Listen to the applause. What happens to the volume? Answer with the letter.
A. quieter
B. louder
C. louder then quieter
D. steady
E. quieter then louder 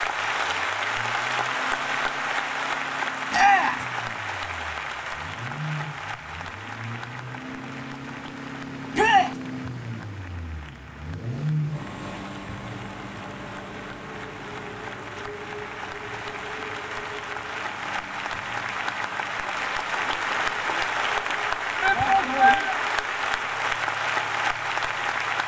E.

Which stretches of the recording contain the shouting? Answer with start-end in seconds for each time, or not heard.
3.3-3.9, 8.9-9.3, 21.8-22.8.